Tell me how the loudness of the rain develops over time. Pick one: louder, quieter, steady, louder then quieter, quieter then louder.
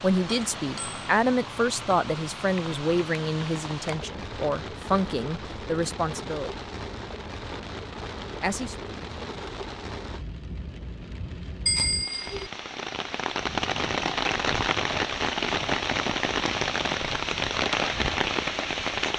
louder.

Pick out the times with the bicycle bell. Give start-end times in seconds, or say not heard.
0.2-1.0, 11.7-12.5.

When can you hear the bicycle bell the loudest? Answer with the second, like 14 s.
12 s.